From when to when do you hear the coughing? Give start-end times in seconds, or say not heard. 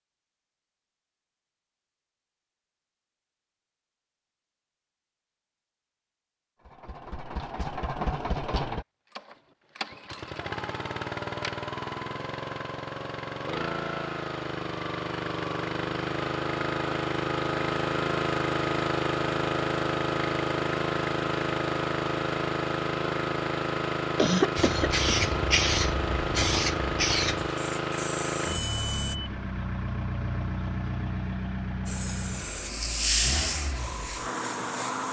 24.1-25.2.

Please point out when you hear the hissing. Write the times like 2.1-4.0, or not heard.
24.6-29.1, 31.9-35.0.